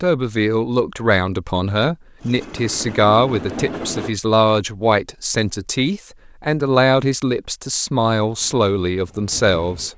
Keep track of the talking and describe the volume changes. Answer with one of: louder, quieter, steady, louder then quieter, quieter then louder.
steady.